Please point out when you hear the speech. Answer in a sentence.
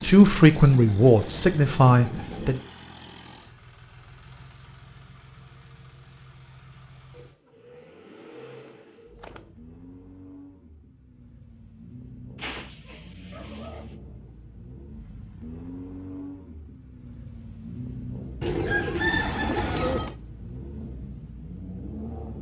The speech can be heard from 0.0 to 2.6 s.